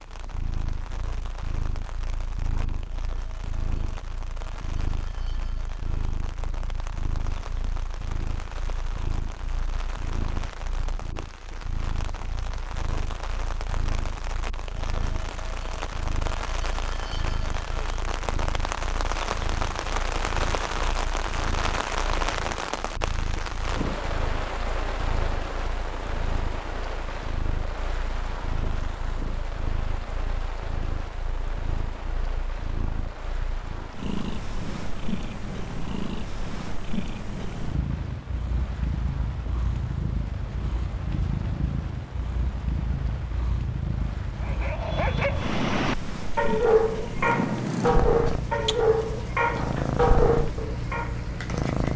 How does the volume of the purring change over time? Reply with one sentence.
The loudness of the purring goes up.